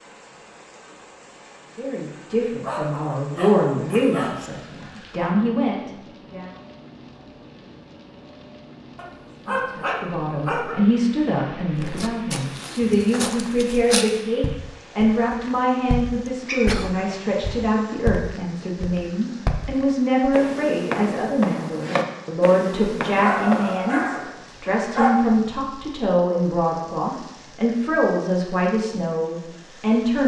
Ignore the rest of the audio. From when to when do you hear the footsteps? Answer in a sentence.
The footsteps can be heard from 11.8 to 23.9 s.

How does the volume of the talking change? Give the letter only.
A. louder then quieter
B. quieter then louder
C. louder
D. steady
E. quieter
D.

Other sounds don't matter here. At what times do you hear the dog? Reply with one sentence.
You can hear the dog from 2.6 to 4.5 s, from 8.9 to 10.8 s, from 16.4 to 17.8 s and from 23.2 to 25.1 s.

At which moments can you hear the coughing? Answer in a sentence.
The coughing can be heard from 16.2 to 16.9 s.